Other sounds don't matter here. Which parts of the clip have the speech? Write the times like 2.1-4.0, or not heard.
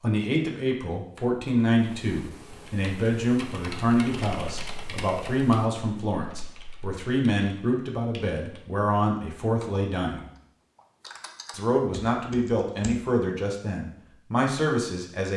0.0-10.2, 11.5-15.3.